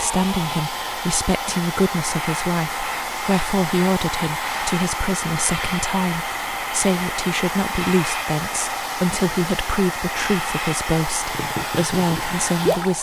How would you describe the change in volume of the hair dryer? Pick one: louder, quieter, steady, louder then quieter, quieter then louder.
steady.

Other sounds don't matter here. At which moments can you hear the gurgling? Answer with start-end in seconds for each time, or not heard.
11.3-12.9.